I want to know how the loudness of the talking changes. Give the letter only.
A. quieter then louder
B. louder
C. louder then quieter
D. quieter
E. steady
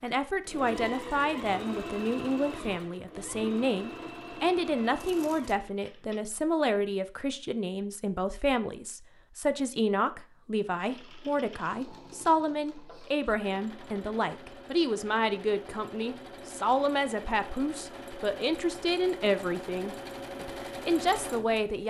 E.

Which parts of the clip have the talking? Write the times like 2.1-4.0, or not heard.
0.0-21.8.